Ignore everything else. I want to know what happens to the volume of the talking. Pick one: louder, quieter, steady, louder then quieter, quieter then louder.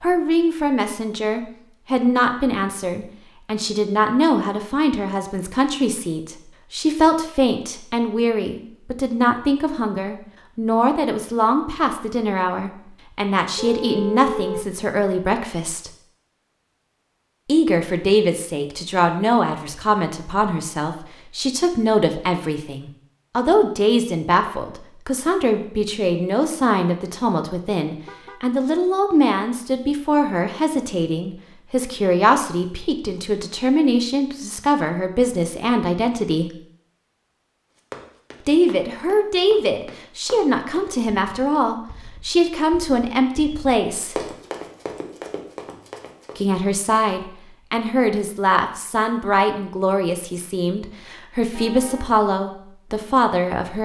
steady.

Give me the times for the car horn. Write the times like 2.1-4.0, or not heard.
13.6-14.7, 27.9-28.4, 51.5-52.2.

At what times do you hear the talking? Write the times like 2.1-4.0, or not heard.
0.0-15.9, 17.4-36.5, 38.5-44.2, 46.4-53.8.